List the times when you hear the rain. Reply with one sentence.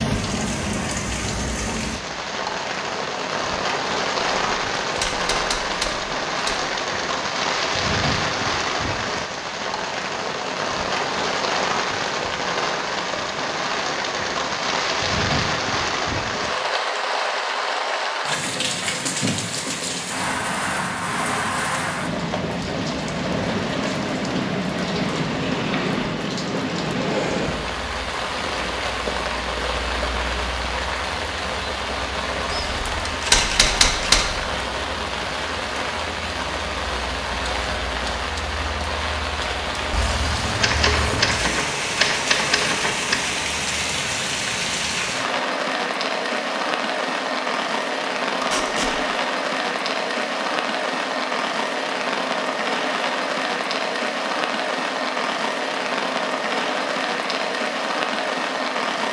The rain can be heard from 0.0 to 59.0 s.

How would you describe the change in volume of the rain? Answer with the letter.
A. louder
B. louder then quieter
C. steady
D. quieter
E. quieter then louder
C.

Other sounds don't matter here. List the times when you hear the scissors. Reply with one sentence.
You can't hear the scissors here.